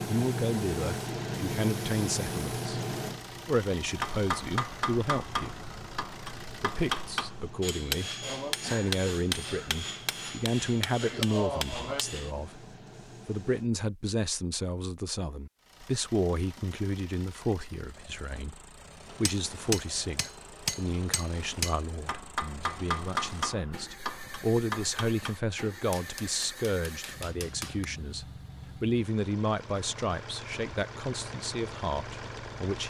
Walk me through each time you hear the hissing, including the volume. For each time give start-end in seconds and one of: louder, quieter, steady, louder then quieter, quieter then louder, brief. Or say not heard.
0.0-13.7 quieter.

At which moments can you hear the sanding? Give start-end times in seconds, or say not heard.
not heard.